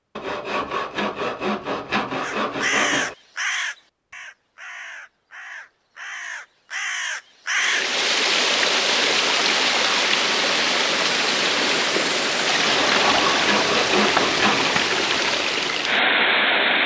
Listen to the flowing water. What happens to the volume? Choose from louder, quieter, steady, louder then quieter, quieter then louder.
steady.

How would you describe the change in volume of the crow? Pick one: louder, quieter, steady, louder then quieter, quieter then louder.
quieter then louder.